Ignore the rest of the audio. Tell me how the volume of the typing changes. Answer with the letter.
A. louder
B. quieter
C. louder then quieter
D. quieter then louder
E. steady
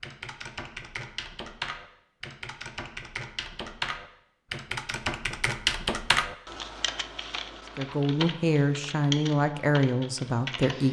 C.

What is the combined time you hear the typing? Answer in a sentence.
The typing can be heard for 11 seconds in total.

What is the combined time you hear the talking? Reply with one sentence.
The talking can be heard for 3 seconds in total.